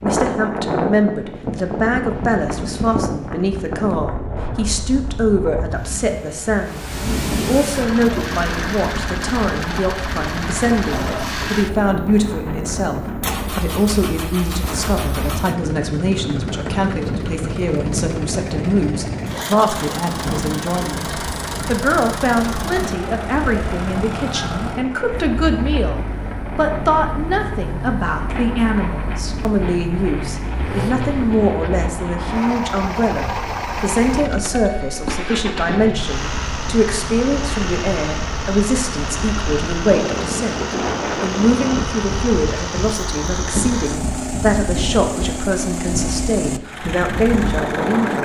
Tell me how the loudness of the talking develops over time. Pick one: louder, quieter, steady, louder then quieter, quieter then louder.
steady.